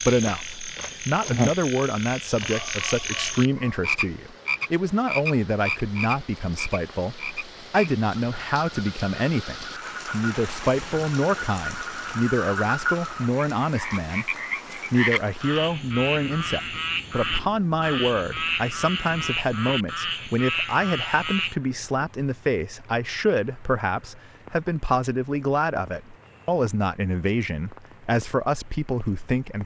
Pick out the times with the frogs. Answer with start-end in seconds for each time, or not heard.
0.0-21.6.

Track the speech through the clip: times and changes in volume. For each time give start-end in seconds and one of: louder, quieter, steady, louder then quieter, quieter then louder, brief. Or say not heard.
0.0-29.6 steady.